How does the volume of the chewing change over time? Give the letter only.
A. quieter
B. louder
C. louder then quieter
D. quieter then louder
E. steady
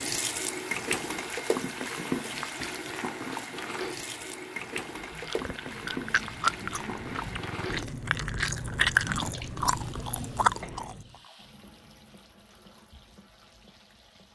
B.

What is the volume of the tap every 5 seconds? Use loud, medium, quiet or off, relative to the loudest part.
loud, medium, quiet.